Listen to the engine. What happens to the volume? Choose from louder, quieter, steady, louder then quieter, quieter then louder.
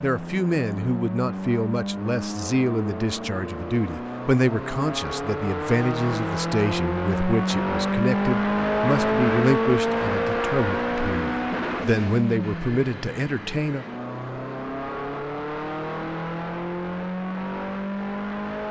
louder then quieter.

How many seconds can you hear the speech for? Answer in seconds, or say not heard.
14 s.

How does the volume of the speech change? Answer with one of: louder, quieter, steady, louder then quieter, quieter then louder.
steady.